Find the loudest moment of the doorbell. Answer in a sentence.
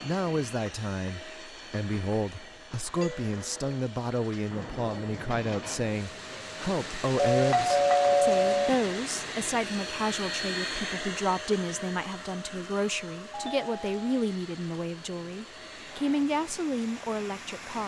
The volume of the doorbell peaks at 8 seconds.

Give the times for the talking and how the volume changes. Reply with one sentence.
The talking can be heard from 0.0 to 17.8 s, at a steady volume.